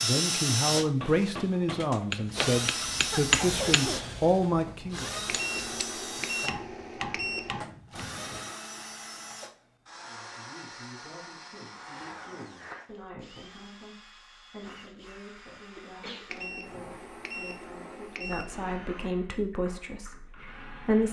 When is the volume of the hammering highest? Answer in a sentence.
The volume of the hammering peaks at 3 seconds.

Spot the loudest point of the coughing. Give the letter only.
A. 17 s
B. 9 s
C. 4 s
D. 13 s
C.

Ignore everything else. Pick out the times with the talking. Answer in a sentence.
The talking can be heard from 0.0 to 5.1 s and from 10.0 to 21.0 s.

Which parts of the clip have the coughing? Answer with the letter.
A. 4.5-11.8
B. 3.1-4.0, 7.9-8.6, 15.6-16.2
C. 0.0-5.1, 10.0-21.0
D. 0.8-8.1
B.